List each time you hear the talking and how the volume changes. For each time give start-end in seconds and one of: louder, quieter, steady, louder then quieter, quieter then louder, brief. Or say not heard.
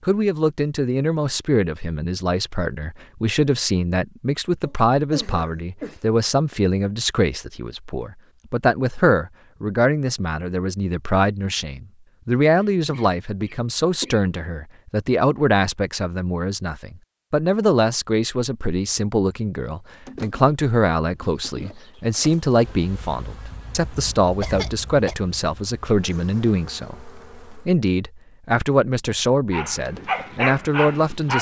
0.0-31.3 steady.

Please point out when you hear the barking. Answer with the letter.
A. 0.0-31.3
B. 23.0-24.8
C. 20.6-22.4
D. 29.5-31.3
D.